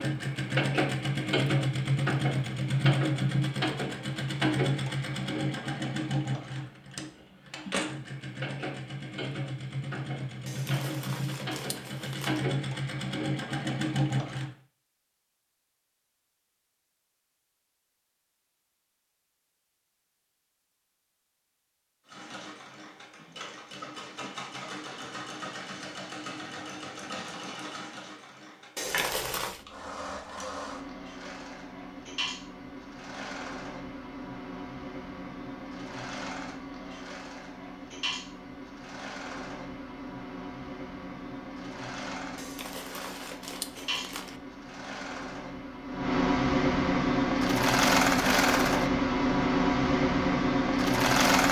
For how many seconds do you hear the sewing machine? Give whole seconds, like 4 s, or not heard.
44 s.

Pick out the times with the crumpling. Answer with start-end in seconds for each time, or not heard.
10.4-12.4, 28.8-29.6, 42.4-44.4.